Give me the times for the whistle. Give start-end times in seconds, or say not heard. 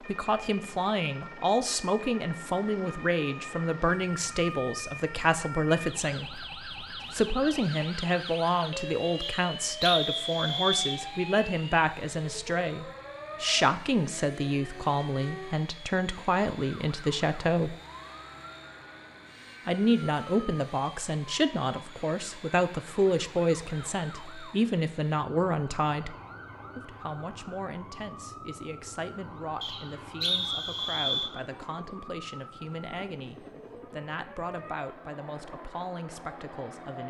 9.2-11.0, 29.6-31.3.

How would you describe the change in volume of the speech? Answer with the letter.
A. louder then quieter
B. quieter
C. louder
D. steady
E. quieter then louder
B.